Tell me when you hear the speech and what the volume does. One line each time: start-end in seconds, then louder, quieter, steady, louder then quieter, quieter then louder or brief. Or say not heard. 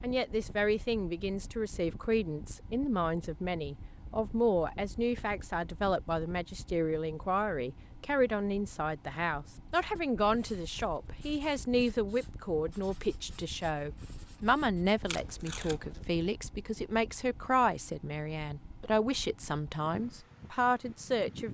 0.0-21.4 steady.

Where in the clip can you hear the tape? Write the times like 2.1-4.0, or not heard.
15.1-16.1.